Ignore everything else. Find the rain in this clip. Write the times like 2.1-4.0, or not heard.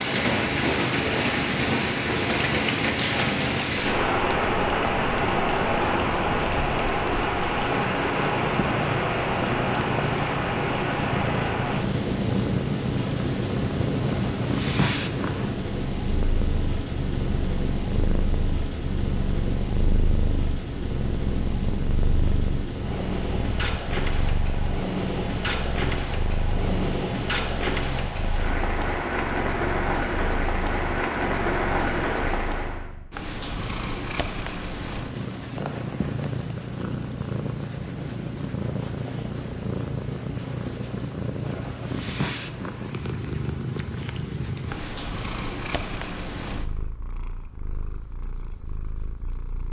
0.0-32.9.